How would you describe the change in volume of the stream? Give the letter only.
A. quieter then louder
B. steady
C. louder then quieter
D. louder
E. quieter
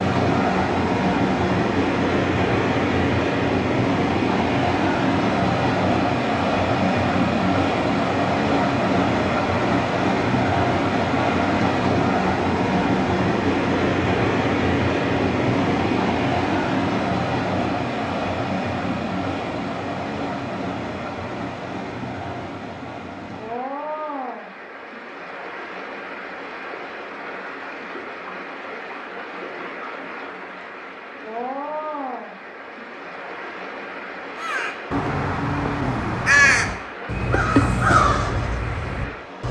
E.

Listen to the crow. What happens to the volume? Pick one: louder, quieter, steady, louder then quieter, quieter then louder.
louder then quieter.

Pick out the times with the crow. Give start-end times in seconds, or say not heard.
34.4-39.4.